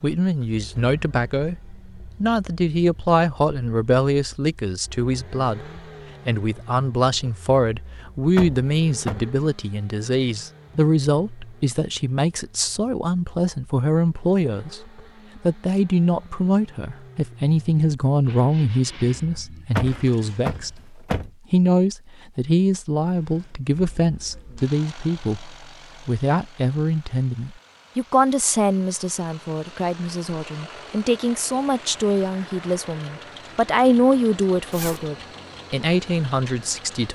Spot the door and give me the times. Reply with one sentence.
The door can be heard from 8.3 to 9.3 s and from 19.8 to 21.3 s.